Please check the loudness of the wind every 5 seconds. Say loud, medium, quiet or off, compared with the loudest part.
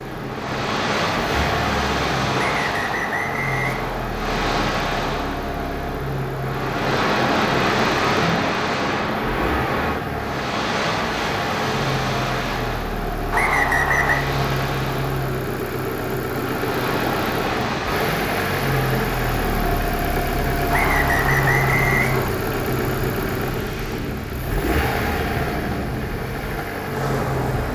loud, loud, loud, medium, medium, medium.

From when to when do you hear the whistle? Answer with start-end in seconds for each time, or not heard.
2.4-4.2, 13.3-14.2, 20.7-22.3.